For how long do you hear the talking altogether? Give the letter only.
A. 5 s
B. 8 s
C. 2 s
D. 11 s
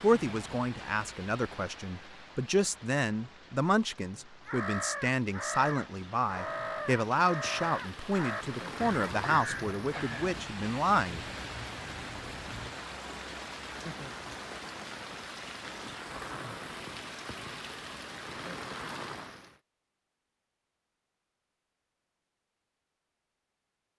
D.